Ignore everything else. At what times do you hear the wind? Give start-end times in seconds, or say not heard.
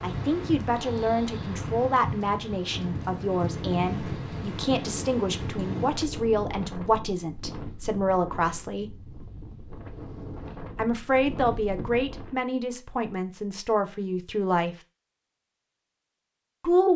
0.0-12.4.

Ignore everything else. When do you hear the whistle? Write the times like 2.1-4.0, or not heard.
not heard.